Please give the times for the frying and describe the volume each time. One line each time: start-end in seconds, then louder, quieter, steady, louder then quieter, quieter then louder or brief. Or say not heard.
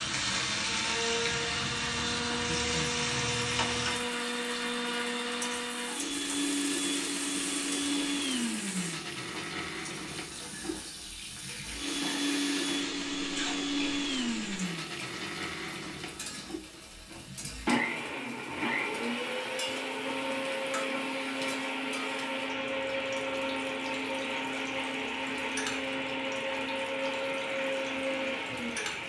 0.0-29.0 quieter.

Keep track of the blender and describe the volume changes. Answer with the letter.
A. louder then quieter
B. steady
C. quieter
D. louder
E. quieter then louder
B.